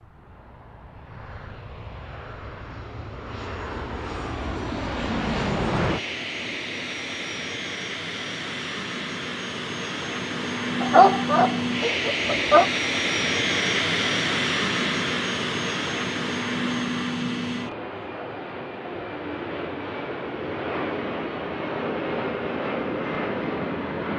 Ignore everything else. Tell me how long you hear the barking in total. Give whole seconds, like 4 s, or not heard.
2 s.